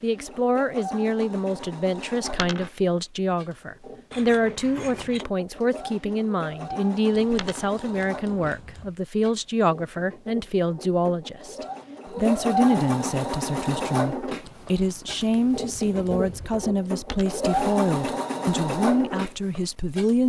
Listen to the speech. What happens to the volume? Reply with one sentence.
The loudness of the speech stays about the same.